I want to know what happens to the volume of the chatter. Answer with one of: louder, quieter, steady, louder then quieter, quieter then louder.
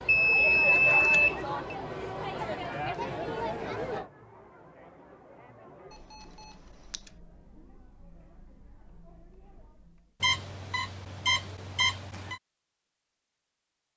quieter.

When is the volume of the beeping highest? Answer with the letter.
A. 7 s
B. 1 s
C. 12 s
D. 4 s
B.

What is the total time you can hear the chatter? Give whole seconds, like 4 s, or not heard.
10 s.